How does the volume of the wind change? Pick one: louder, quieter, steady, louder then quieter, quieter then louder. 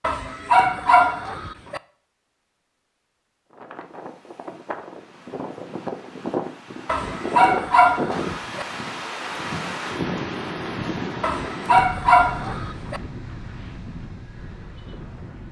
louder then quieter.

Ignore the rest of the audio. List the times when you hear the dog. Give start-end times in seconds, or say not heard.
0.0-1.8, 6.8-8.7, 11.2-13.0.